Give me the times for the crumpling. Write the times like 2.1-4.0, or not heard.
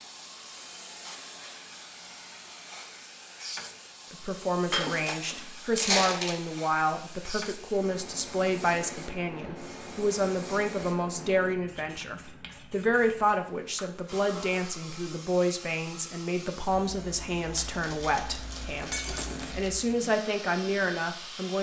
5.8-6.4, 17.5-19.9.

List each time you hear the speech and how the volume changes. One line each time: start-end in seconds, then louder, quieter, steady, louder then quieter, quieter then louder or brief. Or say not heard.
4.1-21.5 steady.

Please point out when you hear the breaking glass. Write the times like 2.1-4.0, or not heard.
4.7-5.5, 18.9-19.6.